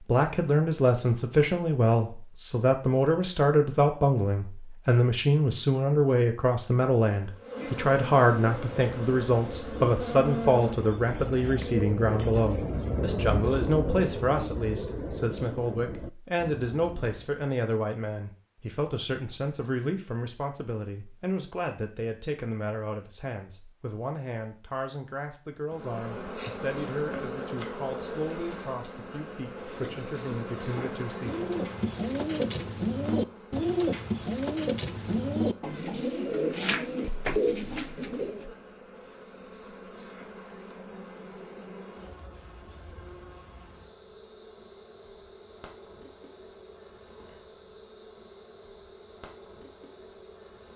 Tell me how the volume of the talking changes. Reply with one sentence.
The loudness of the talking goes down.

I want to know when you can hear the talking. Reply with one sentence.
The talking can be heard from 0.1 to 31.4 s.